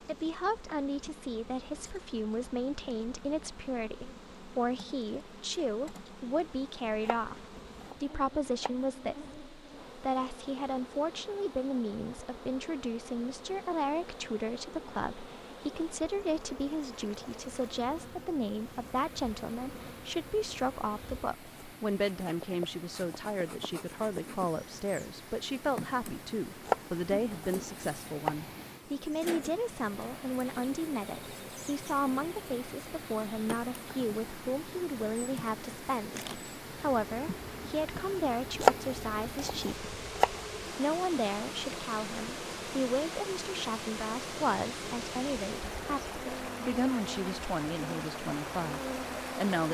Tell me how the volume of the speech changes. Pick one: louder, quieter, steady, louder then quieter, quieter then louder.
steady.